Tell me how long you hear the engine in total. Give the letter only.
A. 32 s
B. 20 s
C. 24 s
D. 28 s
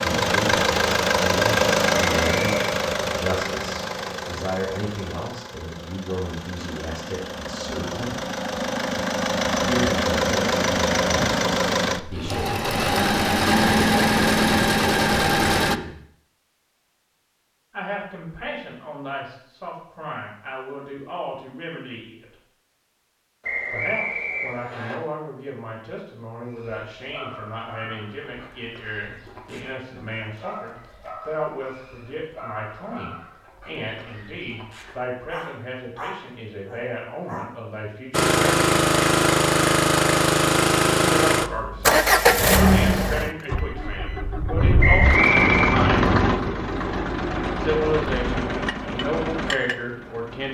D.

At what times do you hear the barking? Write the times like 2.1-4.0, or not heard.
26.4-37.5.